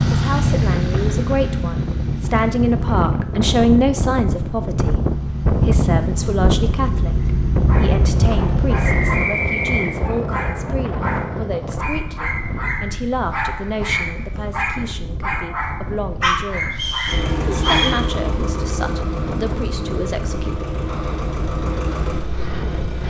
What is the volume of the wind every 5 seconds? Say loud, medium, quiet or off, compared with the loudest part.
loud, loud, medium, medium, medium.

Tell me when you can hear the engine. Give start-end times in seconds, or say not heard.
0.0-9.2, 17.1-23.0.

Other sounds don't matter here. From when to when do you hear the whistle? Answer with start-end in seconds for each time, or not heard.
8.8-10.0, 16.7-18.0.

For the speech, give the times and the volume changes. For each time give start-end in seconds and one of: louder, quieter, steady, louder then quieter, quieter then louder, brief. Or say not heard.
0.1-20.6 quieter.